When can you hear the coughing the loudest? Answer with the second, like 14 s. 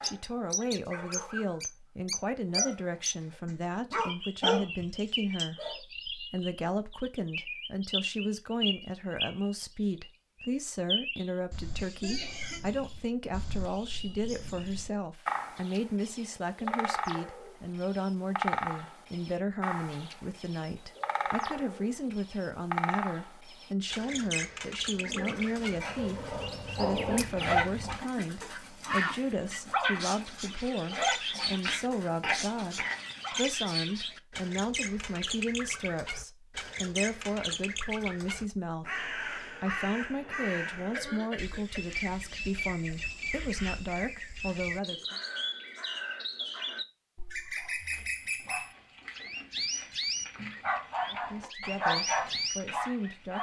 32 s.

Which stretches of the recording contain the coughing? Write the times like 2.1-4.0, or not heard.
11.8-12.6, 31.6-33.4, 40.4-41.8.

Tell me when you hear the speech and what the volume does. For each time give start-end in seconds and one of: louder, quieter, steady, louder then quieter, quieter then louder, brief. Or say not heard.
0.0-45.1 steady
51.0-53.3 brief.